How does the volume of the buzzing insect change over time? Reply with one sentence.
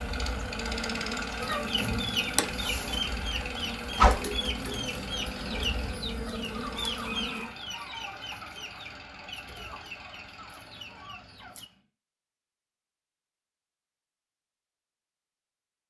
The volume of the buzzing insect stays about the same.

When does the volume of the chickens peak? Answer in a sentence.
The loudest moment of the chickens is at 4 seconds.